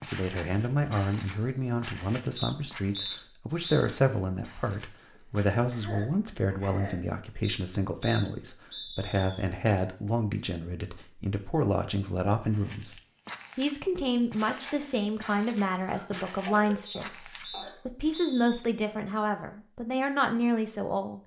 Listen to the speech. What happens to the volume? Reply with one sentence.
The loudness of the speech stays about the same.